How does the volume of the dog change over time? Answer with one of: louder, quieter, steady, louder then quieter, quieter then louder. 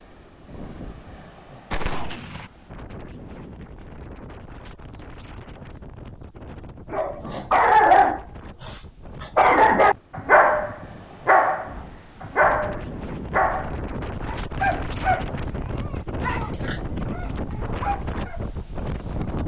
quieter.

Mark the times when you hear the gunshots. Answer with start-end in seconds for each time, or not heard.
1.7-2.5.